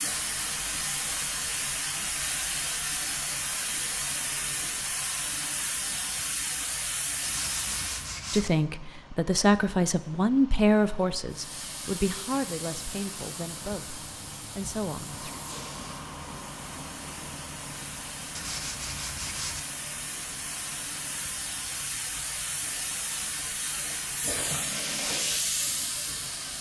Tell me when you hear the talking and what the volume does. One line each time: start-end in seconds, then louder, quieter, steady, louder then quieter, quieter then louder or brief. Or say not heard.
8.3-15.3 quieter.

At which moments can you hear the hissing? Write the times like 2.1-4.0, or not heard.
0.0-8.2, 11.3-26.5.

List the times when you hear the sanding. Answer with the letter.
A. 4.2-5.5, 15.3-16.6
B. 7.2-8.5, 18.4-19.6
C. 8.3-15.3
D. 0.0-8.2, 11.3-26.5
B.